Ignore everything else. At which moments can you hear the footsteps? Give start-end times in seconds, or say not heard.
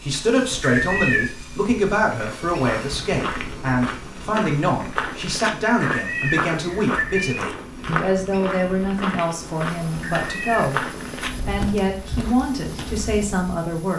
2.1-13.2.